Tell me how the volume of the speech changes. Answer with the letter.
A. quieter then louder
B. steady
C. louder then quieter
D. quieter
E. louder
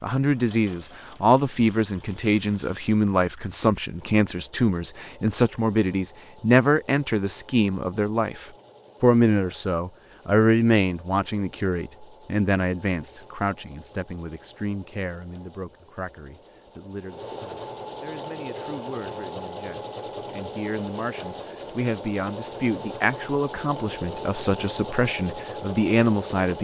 A.